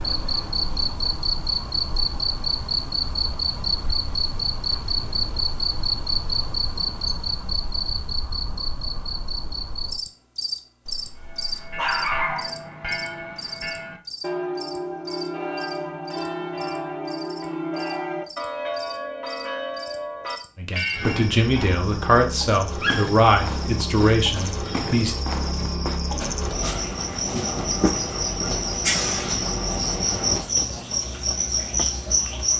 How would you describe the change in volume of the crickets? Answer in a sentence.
The volume of the crickets goes down, then up.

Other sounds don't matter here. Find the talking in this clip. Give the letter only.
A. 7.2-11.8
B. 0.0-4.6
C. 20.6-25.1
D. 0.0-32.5
C.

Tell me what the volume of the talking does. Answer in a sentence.
The loudness of the talking stays about the same.